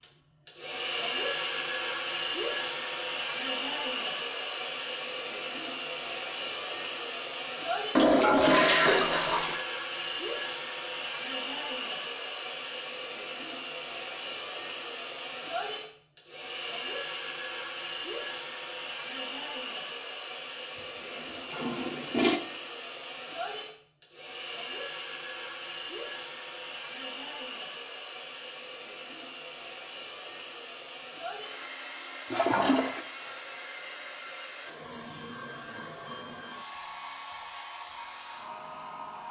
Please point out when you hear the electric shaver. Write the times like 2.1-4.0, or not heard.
not heard.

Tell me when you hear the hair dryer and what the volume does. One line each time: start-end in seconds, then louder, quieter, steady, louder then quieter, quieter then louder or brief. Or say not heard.
0.0-39.2 quieter.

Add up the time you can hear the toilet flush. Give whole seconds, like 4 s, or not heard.
4 s.